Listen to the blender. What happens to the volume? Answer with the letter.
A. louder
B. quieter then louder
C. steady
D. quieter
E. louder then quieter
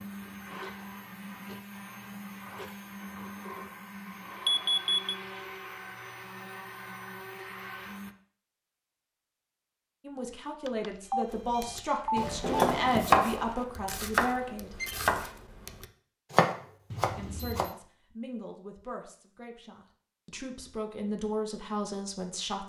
C.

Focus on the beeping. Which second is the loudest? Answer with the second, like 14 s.
5 s.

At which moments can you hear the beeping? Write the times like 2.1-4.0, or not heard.
4.5-5.2, 10.7-12.4, 16.9-17.8.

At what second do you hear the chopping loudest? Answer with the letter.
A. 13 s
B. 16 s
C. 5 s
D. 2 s
A.